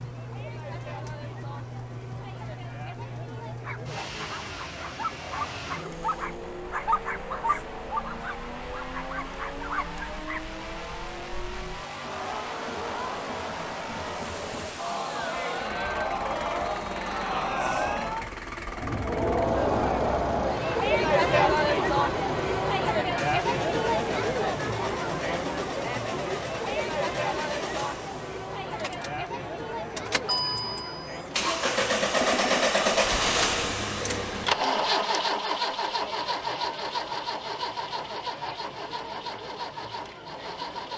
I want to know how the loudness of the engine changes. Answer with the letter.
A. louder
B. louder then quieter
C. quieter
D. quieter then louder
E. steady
A.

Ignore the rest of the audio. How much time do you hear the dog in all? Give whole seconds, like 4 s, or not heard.
7 s.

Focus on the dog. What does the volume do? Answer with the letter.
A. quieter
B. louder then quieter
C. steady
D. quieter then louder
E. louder
B.